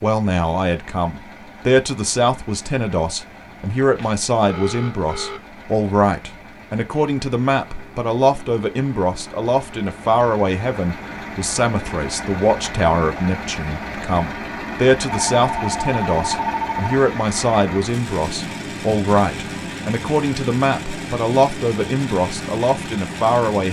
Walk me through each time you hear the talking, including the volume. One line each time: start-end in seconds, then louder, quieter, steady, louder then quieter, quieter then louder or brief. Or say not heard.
0.0-23.6 steady.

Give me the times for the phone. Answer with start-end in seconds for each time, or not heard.
4.0-5.4, 15.1-17.0.